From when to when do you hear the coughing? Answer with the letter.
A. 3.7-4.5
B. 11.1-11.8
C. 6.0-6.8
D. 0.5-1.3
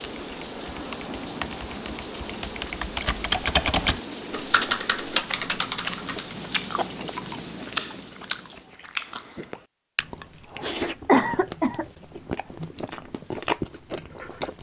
B.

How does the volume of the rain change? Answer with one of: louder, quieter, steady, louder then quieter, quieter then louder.
steady.